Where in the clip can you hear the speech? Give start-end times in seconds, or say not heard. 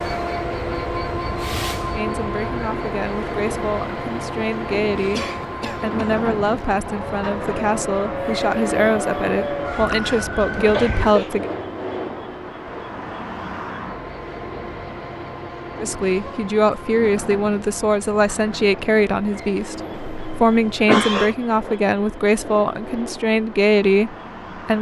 1.9-11.5, 15.8-24.7.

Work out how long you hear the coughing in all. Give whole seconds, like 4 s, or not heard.
3 s.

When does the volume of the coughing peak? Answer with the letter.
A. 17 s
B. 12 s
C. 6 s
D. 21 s
D.